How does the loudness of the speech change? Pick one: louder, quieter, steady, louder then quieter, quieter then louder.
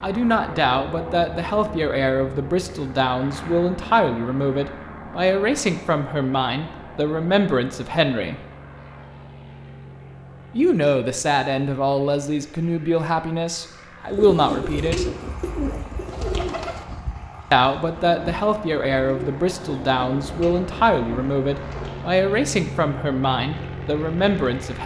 steady.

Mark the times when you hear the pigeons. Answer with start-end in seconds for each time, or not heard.
14.1-22.1.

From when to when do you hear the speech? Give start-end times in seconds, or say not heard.
0.0-8.4, 10.5-15.1, 17.5-24.8.